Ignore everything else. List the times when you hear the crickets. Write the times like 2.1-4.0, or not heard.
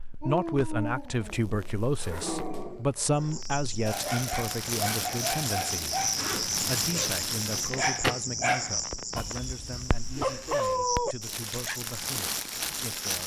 3.1-13.2.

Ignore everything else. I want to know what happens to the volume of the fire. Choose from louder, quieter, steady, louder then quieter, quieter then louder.
louder.